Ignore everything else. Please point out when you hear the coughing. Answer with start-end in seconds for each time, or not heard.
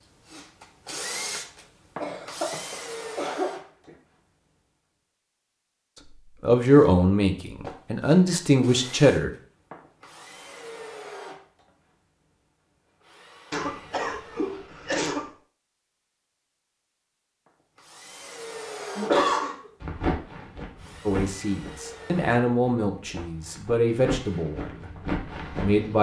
2.0-3.5, 13.5-15.2, 18.9-19.6.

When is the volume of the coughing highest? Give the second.
19 s.